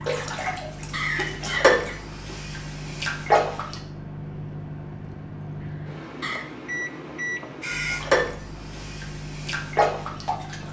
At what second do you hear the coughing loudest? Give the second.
1 s.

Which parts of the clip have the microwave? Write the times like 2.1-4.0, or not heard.
0.0-10.6.